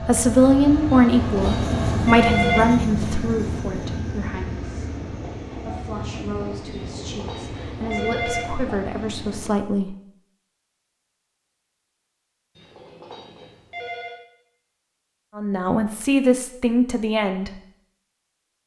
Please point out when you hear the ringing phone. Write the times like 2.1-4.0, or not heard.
1.1-2.9, 6.7-8.6, 12.6-14.2.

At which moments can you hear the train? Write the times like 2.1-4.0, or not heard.
0.0-9.5.